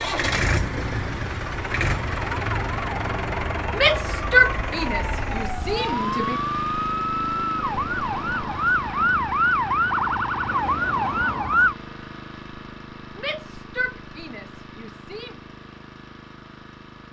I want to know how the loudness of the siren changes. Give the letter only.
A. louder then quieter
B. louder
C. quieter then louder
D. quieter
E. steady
B.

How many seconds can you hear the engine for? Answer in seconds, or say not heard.
17 s.